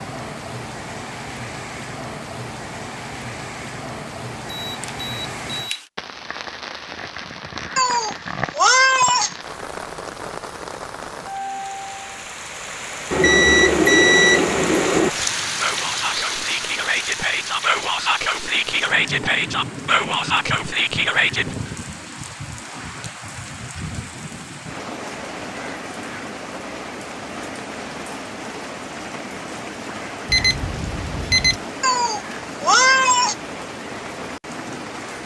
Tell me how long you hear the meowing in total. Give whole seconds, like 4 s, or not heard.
3 s.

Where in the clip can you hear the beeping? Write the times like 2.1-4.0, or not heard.
4.7-5.8, 13.1-15.1, 30.2-31.6.